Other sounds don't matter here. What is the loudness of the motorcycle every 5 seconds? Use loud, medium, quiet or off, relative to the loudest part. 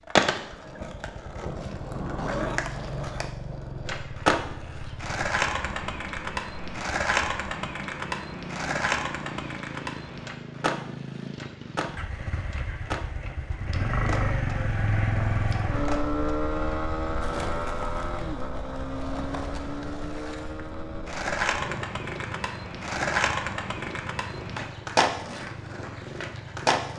medium, medium, loud, loud, medium, medium.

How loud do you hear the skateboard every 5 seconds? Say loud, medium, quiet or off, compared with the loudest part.
loud, loud, medium, medium, loud, loud.